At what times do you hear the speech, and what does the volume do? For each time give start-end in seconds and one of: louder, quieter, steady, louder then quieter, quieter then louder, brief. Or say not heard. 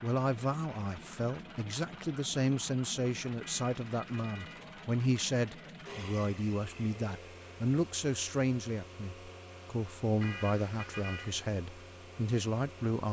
0.0-13.0 steady.